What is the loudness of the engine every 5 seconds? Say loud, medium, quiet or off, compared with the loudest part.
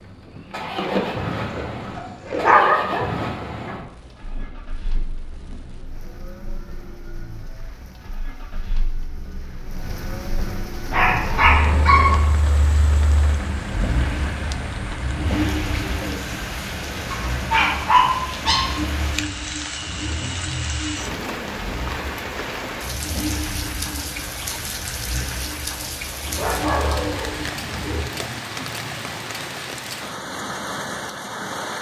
loud, quiet, loud, loud, loud, loud, off.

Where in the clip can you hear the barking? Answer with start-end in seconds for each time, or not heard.
0.8-3.8, 10.9-12.2, 17.1-18.6, 26.4-28.1.